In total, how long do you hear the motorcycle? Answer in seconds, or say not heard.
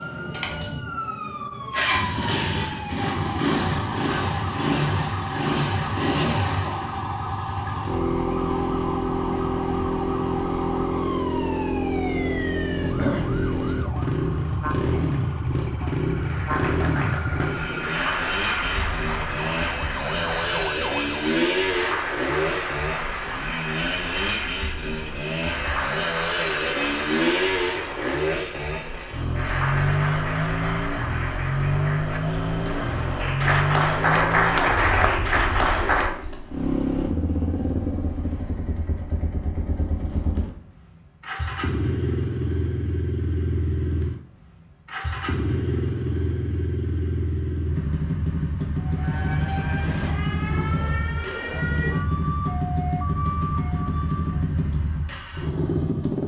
56 s.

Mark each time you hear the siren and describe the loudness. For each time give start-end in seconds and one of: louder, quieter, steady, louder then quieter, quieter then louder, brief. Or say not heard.
0.0-21.4 steady
48.8-54.5 steady.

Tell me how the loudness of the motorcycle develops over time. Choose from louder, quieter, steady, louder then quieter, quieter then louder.
steady.